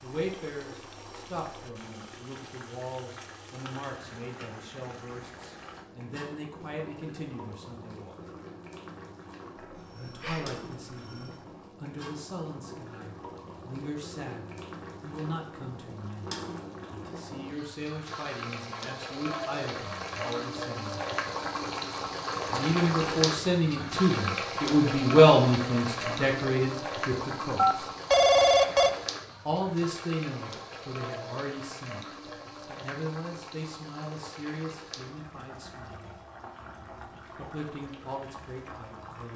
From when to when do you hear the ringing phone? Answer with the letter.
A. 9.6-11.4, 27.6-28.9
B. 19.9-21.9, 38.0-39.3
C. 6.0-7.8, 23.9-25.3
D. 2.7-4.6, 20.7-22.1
A.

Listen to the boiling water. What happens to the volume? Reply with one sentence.
The loudness of the boiling water goes up, then down.